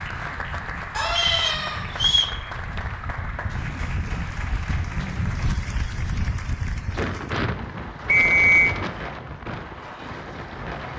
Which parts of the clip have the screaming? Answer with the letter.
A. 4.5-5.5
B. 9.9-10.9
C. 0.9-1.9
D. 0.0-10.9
C.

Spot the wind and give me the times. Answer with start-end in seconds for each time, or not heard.
0.0-10.9.